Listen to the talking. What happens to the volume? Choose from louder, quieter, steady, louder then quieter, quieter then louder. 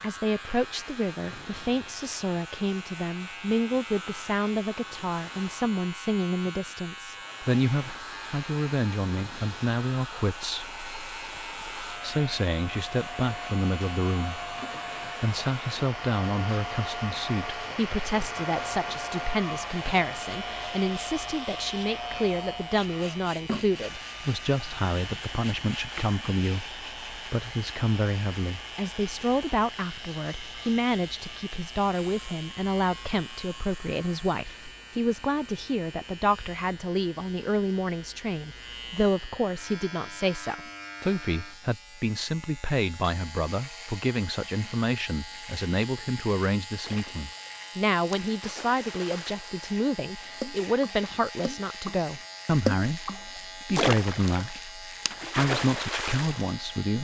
steady.